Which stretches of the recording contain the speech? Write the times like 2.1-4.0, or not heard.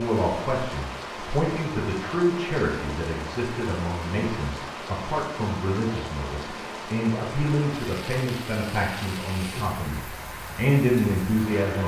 0.0-11.8.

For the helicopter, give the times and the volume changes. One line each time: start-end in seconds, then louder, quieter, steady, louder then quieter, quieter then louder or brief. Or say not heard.
not heard.